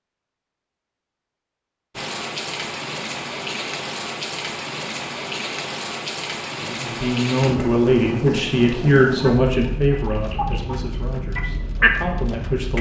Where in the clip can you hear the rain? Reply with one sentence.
You can hear the rain from 1.9 to 12.7 s.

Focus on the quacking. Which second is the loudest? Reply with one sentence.
The volume of the quacking peaks at 12 seconds.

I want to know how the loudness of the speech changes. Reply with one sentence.
The loudness of the speech goes down.